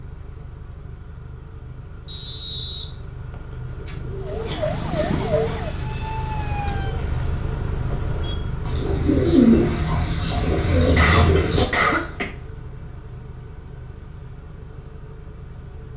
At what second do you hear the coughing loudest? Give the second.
12 s.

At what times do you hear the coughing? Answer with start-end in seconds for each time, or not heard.
4.5-5.6, 10.9-12.2.